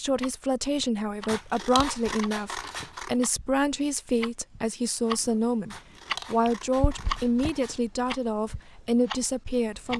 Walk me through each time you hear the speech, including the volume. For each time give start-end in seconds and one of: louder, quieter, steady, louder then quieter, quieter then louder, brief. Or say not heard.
0.0-9.9 steady.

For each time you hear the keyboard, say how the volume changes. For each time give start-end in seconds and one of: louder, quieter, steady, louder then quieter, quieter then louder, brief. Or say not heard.
not heard.